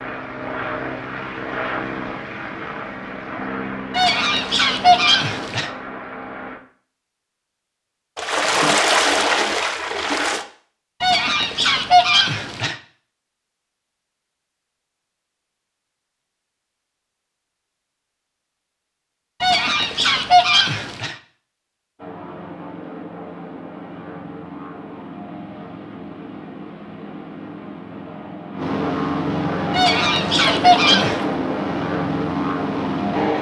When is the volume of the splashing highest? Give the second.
9 s.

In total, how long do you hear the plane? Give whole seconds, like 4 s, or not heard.
18 s.